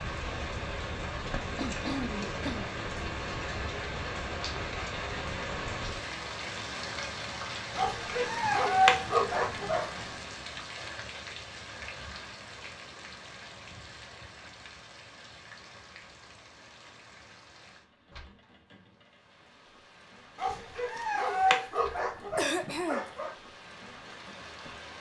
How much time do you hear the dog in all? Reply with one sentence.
The dog can be heard for 5 seconds in total.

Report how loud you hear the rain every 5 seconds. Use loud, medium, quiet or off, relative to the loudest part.
loud, loud, medium, quiet, quiet.